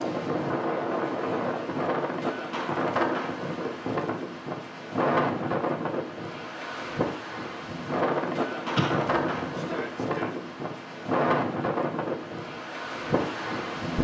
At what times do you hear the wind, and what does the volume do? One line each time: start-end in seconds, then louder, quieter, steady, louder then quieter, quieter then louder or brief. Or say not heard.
0.0-13.9 steady.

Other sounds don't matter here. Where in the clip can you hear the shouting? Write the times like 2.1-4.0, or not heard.
9.5-10.3.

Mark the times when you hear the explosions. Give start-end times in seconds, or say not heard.
8.8-9.6.